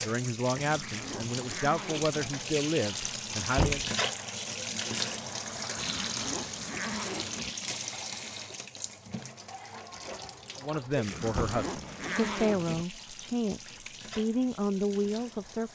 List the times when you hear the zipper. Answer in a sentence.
You can hear the zipper from 0.6 to 2.3 s, from 5.8 to 7.5 s and from 11.1 to 12.8 s.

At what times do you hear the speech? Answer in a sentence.
You can hear the speech from 0.0 to 3.8 s and from 10.6 to 15.7 s.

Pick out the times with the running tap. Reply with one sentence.
The running tap can be heard from 0.0 to 15.7 s.